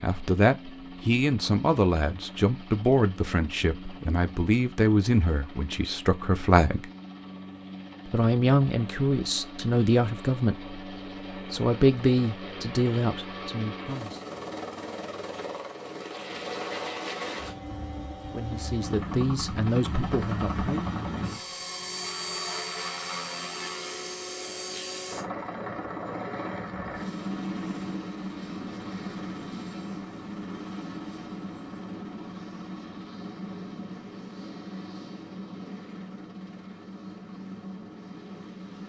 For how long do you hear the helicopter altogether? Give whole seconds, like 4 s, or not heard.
39 s.